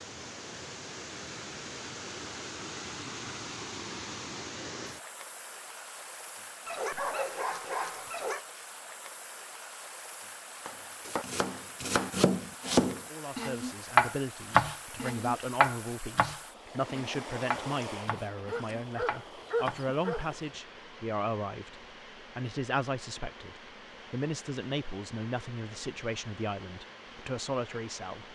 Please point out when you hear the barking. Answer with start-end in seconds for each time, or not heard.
6.7-8.4, 18.4-20.4.